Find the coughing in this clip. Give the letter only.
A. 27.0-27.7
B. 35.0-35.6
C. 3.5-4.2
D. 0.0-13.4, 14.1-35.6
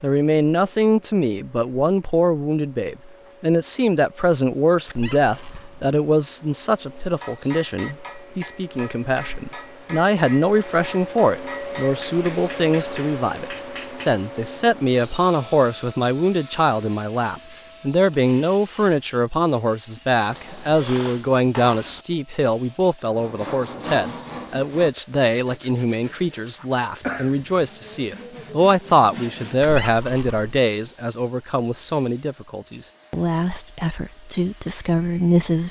A.